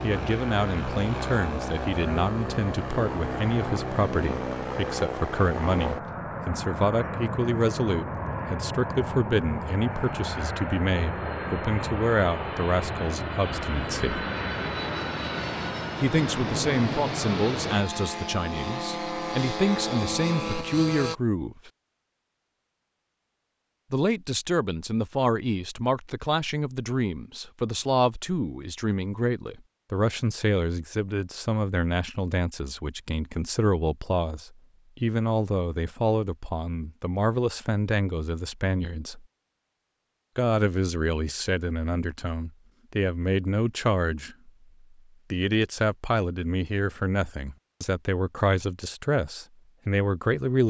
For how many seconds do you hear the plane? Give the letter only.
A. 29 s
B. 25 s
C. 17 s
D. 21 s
D.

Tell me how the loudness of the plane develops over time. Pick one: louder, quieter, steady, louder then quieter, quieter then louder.
steady.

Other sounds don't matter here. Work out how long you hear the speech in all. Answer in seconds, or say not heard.
45 s.